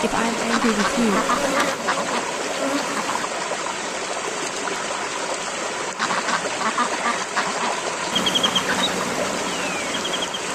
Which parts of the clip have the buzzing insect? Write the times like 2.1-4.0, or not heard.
0.0-3.2, 8.1-10.5.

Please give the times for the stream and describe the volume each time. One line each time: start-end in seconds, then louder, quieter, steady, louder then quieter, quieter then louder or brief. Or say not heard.
0.0-10.5 steady.